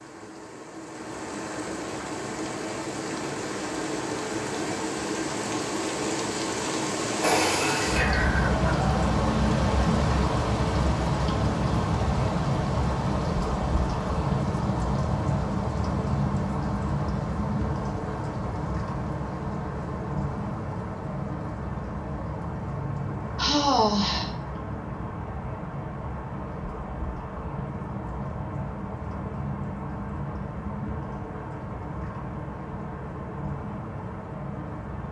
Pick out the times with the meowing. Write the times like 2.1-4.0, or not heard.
not heard.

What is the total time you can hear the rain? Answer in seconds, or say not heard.
35 s.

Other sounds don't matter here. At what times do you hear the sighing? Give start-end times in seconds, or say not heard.
7.2-8.6, 23.4-24.4.